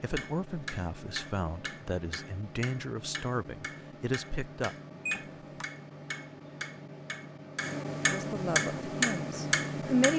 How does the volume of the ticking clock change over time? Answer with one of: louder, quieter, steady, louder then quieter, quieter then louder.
louder.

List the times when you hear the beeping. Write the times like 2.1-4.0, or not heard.
5.0-5.7.